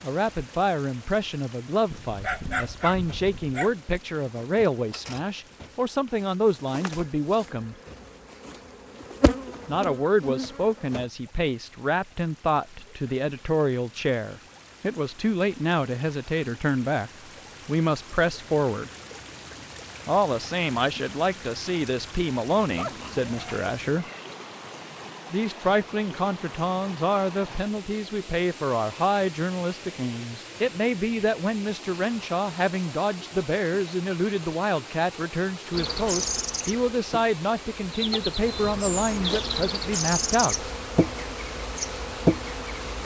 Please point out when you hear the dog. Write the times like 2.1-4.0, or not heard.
1.9-3.8, 22.7-24.4.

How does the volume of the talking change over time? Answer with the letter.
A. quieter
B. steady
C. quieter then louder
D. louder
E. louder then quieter
B.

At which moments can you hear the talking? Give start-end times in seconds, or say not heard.
0.0-7.8, 9.7-18.9, 20.1-24.1, 25.3-40.7.